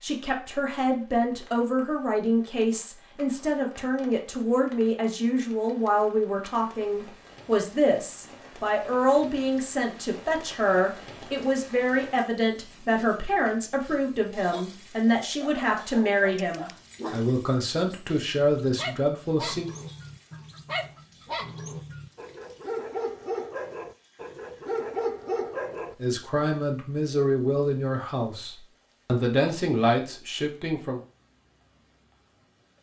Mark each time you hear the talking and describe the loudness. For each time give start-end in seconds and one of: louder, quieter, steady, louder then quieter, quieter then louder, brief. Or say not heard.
0.0-19.6 steady
26.0-31.0 quieter then louder.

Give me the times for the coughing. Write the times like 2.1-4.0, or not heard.
not heard.